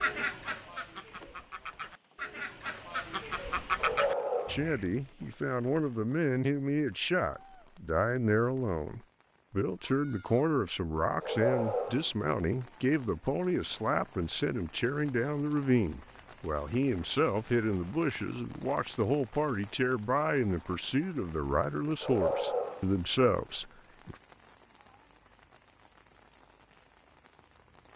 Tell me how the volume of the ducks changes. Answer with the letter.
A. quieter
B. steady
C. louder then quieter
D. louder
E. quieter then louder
D.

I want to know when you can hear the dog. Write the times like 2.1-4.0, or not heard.
3.8-4.7, 11.2-12.1, 22.0-22.9.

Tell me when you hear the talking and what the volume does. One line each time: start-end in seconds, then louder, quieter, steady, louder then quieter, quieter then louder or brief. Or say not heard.
4.5-24.1 steady.